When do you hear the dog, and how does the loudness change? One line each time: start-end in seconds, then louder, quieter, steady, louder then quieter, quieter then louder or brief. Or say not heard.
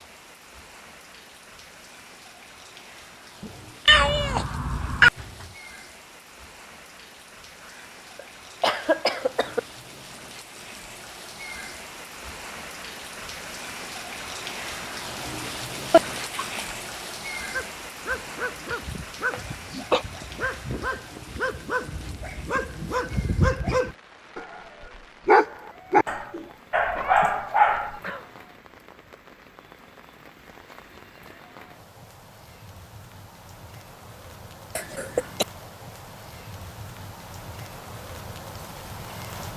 17.5-24.4 louder
25.2-28.0 brief.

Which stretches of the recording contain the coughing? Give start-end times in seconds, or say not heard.
8.2-9.6, 19.3-20.1, 34.8-35.5.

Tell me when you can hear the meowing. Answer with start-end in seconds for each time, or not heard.
3.4-5.5, 15.9-16.6, 26.9-28.4.